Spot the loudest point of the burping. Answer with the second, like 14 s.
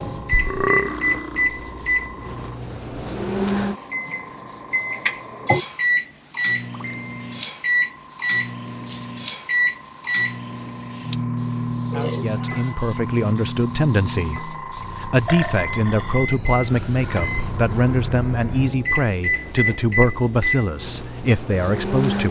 1 s.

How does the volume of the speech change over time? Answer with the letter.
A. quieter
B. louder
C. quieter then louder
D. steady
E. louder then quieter
D.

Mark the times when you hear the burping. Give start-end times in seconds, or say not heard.
0.3-1.0, 11.9-12.7, 15.2-16.4.